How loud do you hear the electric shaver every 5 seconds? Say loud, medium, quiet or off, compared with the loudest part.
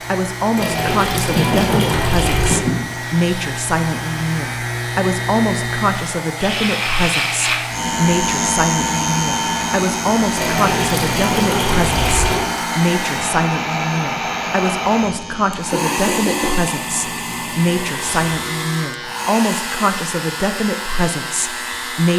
medium, loud, medium, medium, medium.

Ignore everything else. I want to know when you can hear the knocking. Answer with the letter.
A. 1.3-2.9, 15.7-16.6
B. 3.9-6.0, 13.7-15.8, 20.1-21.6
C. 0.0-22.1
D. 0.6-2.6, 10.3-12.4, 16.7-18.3
A.